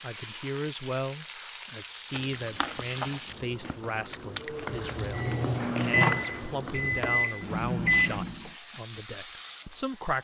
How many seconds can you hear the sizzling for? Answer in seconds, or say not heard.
10 s.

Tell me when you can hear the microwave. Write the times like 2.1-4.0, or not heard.
4.8-8.5.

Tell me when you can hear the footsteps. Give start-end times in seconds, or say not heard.
not heard.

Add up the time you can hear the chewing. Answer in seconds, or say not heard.
4 s.